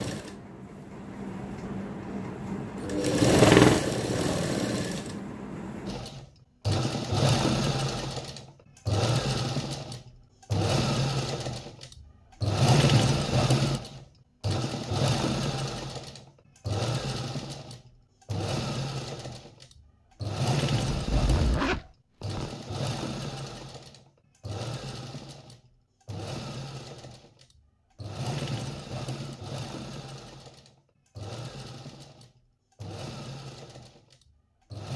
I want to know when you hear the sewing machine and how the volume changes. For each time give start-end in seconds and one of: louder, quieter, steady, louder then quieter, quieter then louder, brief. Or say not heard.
0.0-34.9 quieter.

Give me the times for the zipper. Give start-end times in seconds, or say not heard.
20.9-22.6.